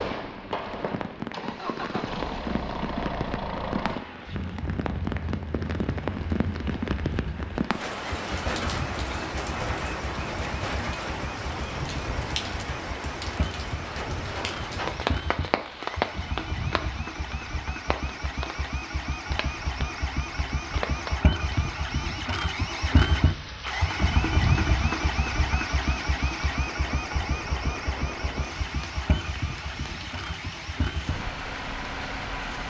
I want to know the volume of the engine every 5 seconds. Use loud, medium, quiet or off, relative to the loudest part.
medium, medium, medium, medium, loud, loud, medium.